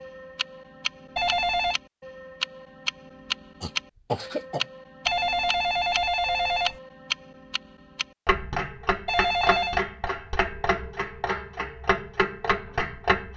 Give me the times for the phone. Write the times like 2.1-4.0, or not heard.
1.1-1.8, 5.0-6.8, 9.1-9.8.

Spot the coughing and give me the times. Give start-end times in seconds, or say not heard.
3.6-4.7.